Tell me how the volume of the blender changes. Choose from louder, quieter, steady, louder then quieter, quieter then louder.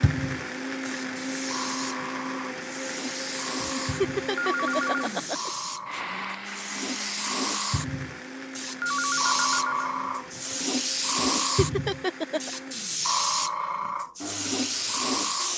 quieter.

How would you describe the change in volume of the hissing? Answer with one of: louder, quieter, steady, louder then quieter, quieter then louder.
louder.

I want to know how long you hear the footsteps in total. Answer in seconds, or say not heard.
not heard.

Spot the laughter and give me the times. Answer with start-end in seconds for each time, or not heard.
3.6-6.0, 11.2-12.5.